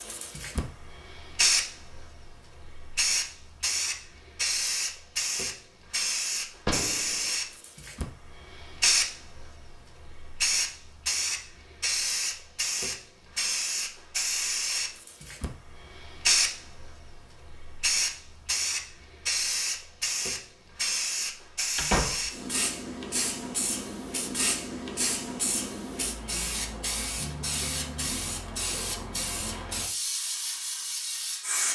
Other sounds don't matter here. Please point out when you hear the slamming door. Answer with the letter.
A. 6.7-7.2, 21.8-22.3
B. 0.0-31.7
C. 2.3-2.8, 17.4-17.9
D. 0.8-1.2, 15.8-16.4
A.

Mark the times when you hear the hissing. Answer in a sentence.
You can hear the hissing from 0.0 to 31.7 s.